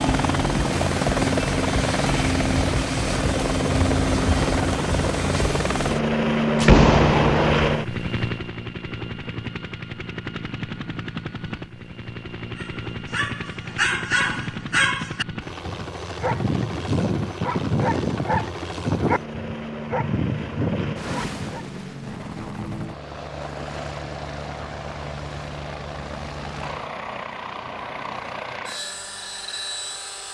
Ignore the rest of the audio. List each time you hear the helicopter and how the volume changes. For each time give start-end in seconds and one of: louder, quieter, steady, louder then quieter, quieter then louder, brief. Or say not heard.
0.0-30.2 quieter.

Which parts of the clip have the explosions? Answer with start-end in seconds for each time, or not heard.
6.5-7.7.